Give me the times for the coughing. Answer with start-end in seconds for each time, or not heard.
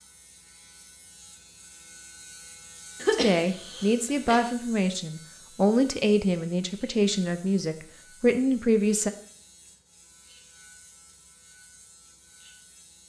3.0-4.4.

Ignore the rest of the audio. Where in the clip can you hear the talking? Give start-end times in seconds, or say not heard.
3.1-9.1.